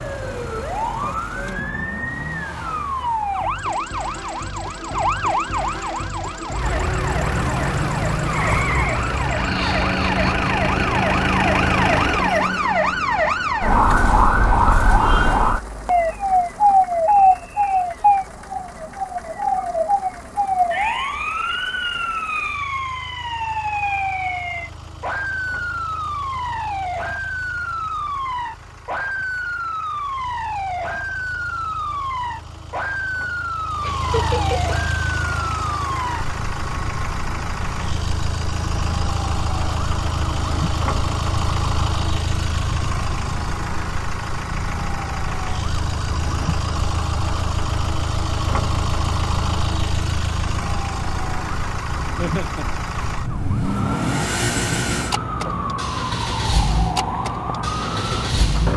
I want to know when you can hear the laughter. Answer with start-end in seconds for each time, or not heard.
9.3-11.1, 33.8-34.8, 52.1-52.6.